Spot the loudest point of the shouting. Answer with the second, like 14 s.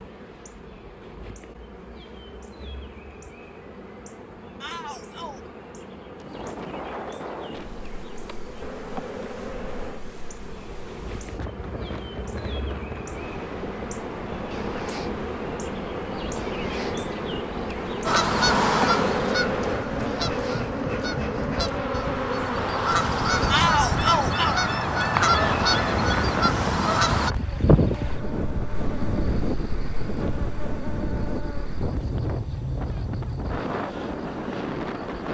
24 s.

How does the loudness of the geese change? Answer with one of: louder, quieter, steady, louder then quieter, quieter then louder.
quieter then louder.